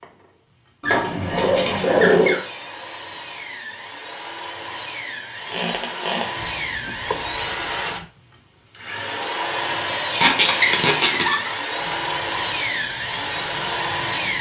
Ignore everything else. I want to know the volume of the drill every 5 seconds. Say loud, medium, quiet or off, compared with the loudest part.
medium, loud, loud.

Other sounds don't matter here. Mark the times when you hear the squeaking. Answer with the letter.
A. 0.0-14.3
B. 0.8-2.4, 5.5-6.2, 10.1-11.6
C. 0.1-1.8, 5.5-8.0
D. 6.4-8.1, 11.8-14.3
B.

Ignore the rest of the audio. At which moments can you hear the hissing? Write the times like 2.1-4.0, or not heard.
6.4-8.1, 11.8-14.3.